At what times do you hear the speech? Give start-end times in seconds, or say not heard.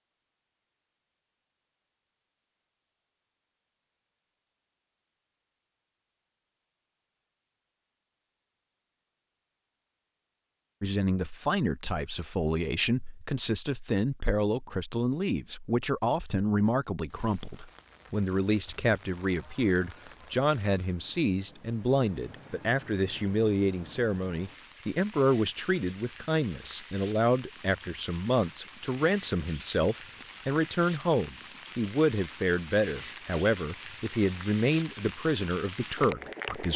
10.8-36.7.